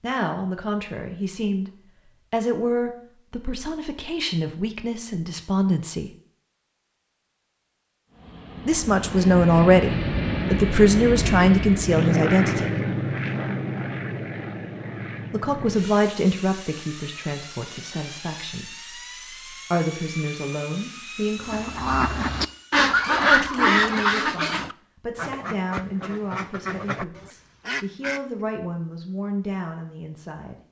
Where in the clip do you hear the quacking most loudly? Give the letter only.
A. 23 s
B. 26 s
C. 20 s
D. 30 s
A.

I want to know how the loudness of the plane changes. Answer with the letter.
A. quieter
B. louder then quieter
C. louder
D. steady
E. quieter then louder
A.